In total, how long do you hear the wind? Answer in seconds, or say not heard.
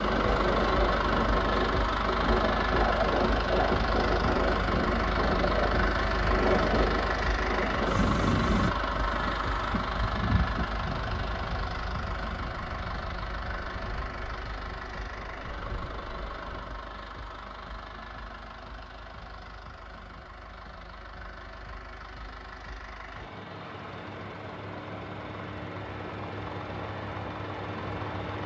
17 s.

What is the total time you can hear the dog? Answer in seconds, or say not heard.
not heard.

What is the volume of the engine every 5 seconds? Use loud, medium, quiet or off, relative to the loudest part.
loud, loud, medium, quiet, quiet, medium.